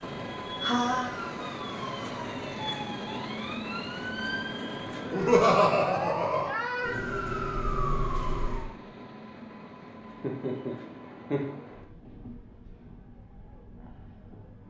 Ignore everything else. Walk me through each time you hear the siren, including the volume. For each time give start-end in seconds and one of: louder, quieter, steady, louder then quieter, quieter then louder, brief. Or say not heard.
0.0-8.7 louder.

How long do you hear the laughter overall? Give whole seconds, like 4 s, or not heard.
4 s.